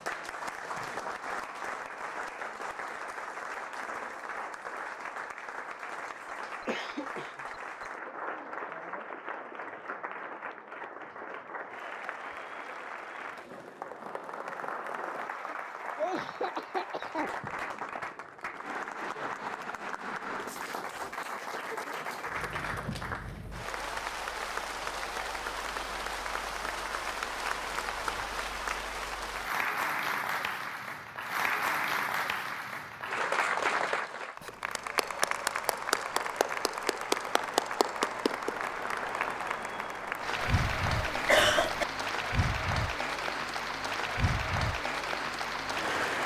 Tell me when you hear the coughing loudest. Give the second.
41 s.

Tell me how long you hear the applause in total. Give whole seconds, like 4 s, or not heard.
46 s.